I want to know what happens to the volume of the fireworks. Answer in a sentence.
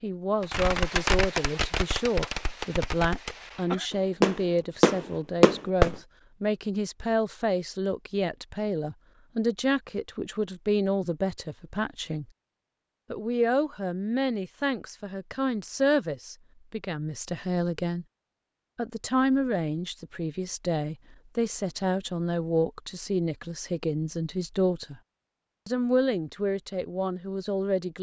The volume of the fireworks goes down, then up.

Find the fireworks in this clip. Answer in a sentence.
You can hear the fireworks from 0.4 to 6.0 s.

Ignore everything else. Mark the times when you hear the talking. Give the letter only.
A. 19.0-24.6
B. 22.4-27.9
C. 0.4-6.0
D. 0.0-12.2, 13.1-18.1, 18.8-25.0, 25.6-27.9
D.